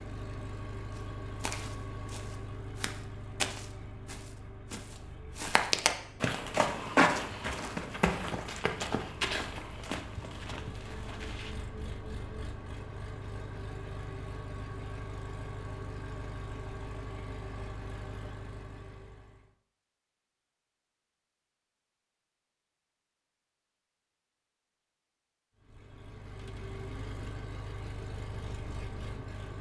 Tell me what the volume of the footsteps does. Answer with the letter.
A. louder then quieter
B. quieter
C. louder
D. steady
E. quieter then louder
A.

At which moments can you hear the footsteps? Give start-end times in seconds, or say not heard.
0.9-11.6.